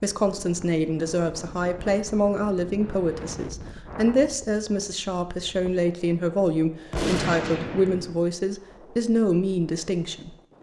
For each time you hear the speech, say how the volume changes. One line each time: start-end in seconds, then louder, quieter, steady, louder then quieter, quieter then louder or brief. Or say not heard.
0.0-10.3 steady.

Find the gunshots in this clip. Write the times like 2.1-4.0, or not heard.
6.9-8.2.